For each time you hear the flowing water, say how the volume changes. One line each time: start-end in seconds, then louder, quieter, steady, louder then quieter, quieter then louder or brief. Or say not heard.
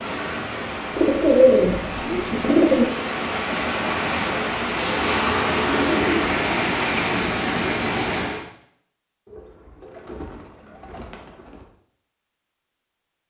0.0-8.4 louder.